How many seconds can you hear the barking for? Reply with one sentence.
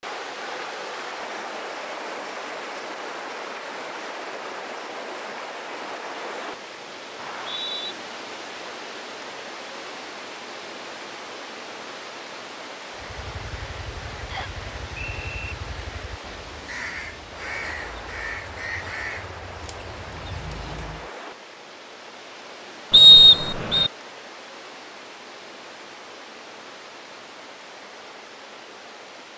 You can't hear the barking here.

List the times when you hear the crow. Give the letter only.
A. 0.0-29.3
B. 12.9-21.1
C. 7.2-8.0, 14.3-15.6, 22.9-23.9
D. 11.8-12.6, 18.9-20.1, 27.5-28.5
B.